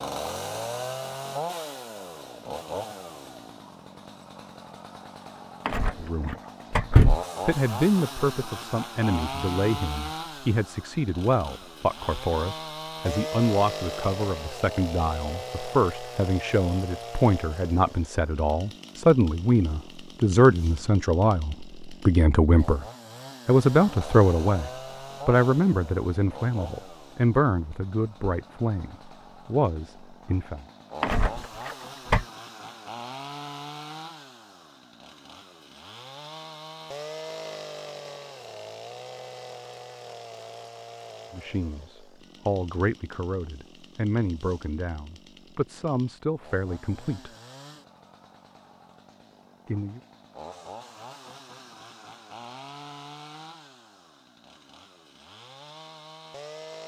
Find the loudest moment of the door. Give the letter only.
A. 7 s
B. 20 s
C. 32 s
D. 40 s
A.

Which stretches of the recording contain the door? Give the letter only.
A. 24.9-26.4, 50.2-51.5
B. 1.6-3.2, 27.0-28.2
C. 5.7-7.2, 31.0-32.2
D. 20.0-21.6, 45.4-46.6
C.